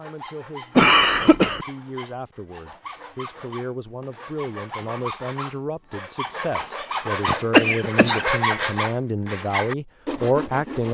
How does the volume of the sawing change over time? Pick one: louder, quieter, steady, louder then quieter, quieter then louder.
louder.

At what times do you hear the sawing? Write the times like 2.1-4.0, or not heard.
0.0-10.8.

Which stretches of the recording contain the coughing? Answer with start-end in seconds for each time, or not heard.
0.8-1.6, 7.2-8.3.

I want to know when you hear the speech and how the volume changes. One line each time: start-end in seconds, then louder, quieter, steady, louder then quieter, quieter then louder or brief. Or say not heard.
0.0-10.8 louder.